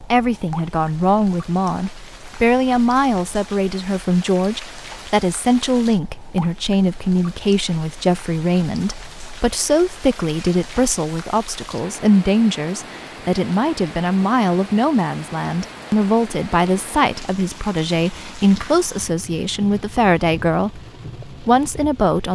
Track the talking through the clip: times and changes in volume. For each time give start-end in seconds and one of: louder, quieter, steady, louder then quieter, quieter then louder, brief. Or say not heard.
0.1-22.2 steady.